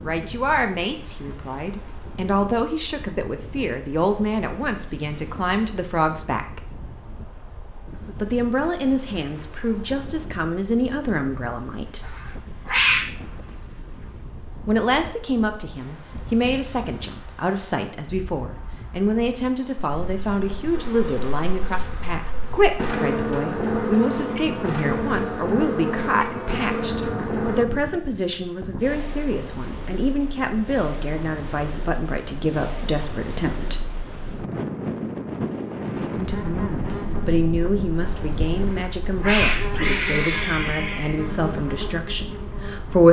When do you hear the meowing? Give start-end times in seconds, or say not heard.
12.1-13.1, 38.5-41.2.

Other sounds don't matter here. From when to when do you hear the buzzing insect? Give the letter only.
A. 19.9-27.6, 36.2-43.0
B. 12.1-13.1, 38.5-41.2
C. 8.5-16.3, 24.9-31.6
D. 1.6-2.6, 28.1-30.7
A.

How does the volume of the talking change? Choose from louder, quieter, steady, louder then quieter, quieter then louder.
steady.